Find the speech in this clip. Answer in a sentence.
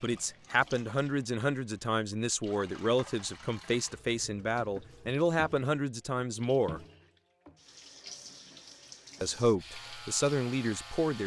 You can hear the speech from 0.0 to 6.8 s and from 9.2 to 11.2 s.